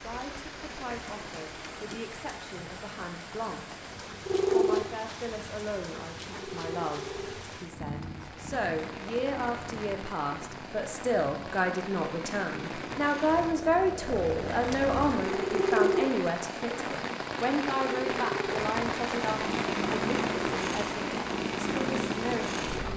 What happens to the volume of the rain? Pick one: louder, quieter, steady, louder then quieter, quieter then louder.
louder.